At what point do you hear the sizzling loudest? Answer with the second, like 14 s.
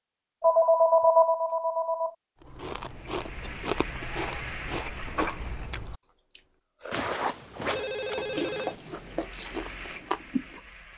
5 s.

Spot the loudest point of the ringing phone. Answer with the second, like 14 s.
1 s.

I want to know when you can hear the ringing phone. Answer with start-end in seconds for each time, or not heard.
0.4-2.1, 6.9-8.8.